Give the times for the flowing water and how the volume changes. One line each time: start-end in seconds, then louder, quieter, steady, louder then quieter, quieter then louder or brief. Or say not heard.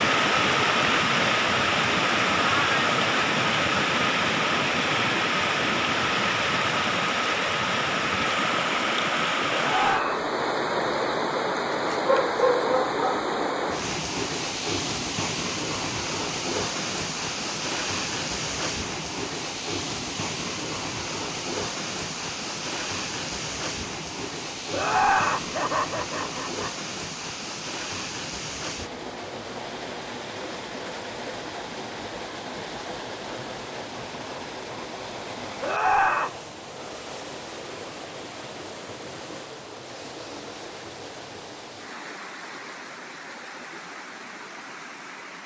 0.0-45.4 quieter.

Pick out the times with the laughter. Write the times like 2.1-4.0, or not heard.
9.5-10.3, 24.7-26.7, 35.6-36.3.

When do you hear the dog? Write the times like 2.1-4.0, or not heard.
11.7-13.2.